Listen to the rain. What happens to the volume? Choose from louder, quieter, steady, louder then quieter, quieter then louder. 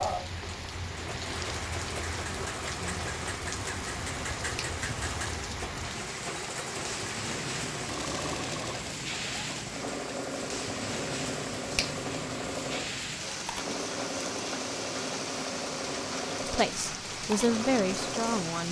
steady.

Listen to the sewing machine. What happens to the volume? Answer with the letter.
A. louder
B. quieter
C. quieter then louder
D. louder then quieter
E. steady
E.